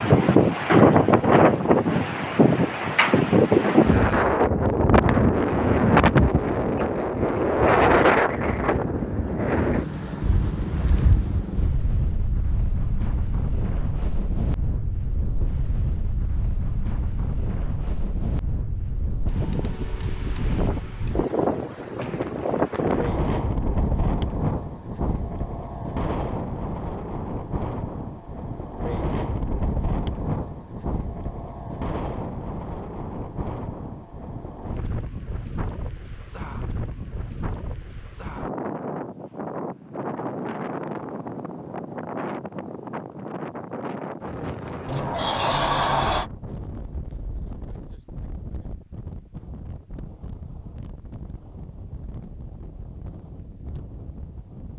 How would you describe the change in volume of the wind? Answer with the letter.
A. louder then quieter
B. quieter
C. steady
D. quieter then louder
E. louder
B.